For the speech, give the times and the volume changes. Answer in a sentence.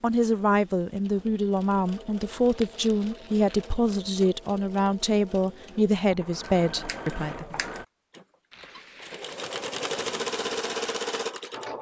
The speech can be heard from 0.0 to 7.6 s, at a steady volume.